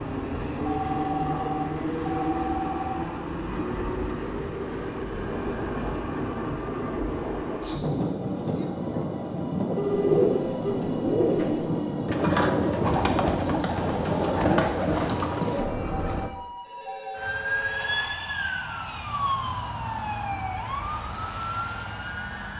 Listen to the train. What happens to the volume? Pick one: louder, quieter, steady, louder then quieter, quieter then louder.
steady.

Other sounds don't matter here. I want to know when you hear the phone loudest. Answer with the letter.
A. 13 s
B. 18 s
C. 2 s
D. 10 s
D.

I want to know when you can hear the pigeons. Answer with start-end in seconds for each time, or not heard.
9.9-15.7.